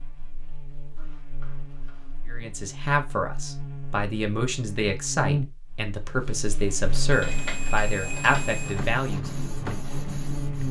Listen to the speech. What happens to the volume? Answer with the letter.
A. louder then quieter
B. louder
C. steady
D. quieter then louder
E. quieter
C.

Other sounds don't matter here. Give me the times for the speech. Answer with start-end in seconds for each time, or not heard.
2.2-9.3.